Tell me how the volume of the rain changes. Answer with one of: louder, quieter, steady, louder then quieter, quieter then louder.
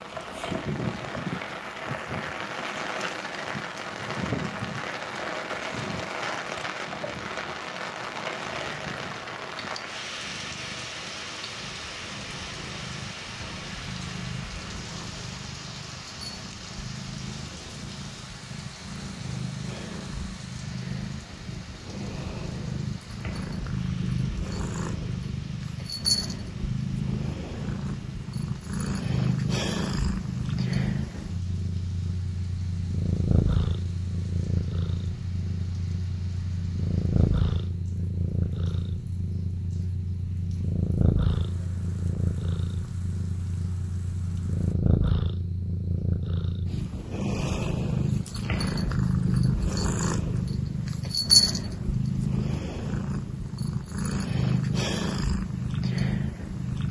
quieter.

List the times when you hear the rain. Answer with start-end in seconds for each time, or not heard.
0.0-44.8.